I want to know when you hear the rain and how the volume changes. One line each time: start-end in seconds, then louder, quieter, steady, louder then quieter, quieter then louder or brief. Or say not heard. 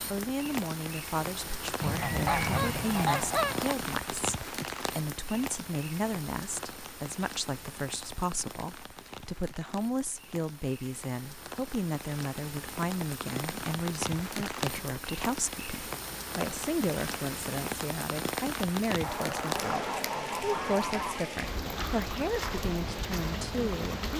0.0-24.1 quieter then louder.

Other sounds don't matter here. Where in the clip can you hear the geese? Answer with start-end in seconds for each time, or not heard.
1.8-3.8, 19.0-21.2.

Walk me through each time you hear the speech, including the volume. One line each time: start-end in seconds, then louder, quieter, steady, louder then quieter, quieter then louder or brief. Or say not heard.
0.1-24.1 steady.